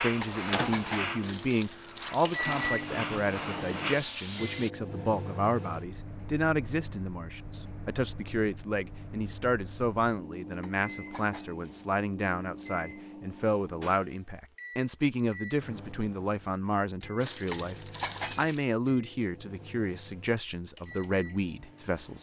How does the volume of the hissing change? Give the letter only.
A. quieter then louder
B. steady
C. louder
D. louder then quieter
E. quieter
A.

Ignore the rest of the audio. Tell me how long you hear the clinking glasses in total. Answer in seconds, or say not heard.
3 s.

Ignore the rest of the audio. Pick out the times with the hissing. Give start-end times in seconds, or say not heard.
0.0-4.7.